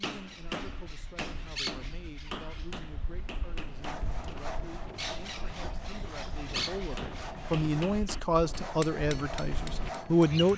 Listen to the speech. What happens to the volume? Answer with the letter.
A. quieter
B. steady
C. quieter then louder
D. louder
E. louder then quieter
D.